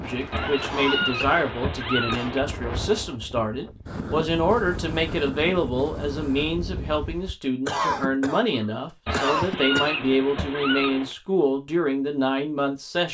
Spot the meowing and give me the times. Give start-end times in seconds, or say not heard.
0.3-2.5, 9.1-11.2.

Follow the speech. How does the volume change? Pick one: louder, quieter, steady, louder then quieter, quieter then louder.
steady.